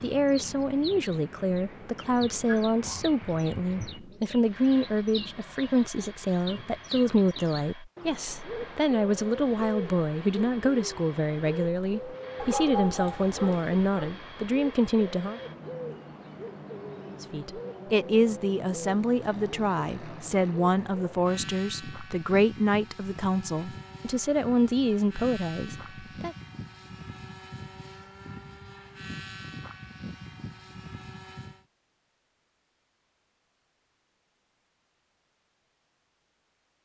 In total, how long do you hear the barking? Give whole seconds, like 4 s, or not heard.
2 s.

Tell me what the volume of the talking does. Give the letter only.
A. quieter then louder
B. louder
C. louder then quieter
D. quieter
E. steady
E.